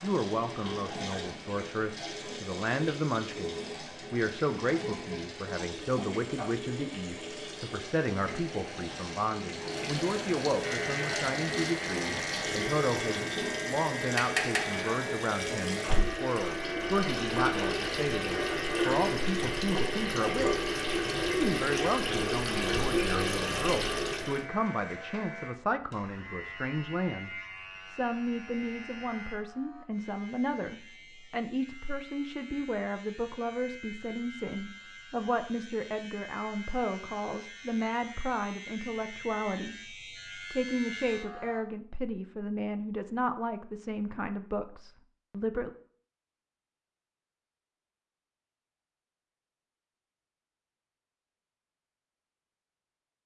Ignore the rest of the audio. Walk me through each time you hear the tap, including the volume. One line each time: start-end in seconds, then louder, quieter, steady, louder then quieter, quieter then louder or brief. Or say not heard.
0.0-24.4 louder.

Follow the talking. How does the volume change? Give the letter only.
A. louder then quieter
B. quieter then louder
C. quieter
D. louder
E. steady
E.